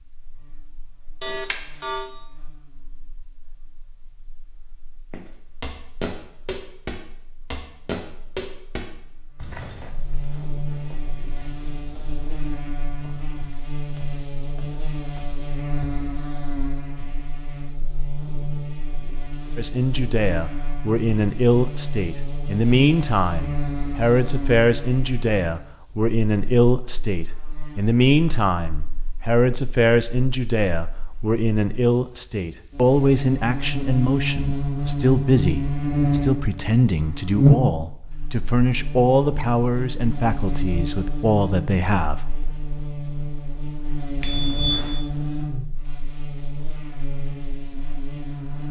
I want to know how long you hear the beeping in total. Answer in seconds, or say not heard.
2 s.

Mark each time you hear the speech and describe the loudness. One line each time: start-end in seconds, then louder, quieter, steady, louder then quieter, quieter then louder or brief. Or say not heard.
19.6-42.2 steady.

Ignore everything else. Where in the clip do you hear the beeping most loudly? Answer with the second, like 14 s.
45 s.